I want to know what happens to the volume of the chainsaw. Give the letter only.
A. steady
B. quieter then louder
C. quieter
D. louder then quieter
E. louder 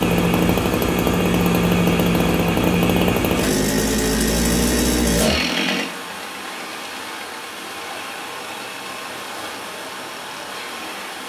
C.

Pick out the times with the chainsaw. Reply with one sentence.
You can hear the chainsaw from 0.0 to 11.2 s.